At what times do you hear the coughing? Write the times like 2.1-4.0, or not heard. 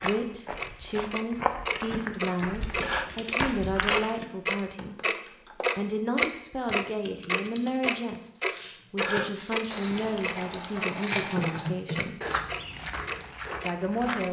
2.4-3.1, 8.6-9.3.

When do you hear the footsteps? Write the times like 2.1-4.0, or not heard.
0.0-4.2, 12.2-14.2.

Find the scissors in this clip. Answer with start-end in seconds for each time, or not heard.
9.7-11.7.